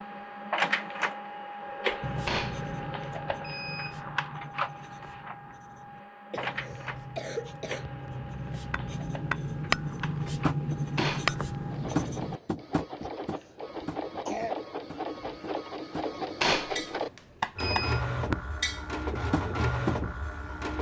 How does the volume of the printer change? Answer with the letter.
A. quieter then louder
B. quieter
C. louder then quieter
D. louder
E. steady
A.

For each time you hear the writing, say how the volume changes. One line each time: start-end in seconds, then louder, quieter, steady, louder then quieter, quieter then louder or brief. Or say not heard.
2.0-12.4 quieter then louder.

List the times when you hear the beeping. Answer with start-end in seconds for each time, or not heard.
2.2-4.0, 10.9-11.3, 16.4-18.0.